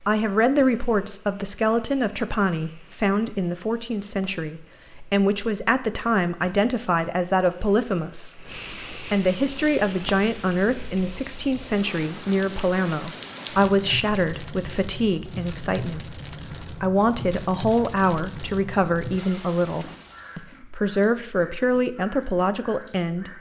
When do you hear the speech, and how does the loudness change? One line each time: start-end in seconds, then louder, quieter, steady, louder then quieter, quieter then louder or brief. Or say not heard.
0.0-23.3 steady.